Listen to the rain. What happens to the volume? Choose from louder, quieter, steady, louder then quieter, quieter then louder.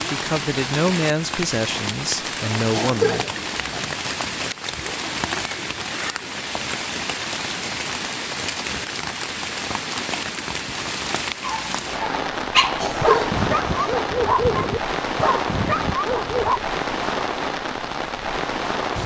steady.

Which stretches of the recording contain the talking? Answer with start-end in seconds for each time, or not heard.
0.0-3.2.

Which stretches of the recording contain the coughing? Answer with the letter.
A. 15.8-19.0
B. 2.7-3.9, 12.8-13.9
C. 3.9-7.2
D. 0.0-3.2
B.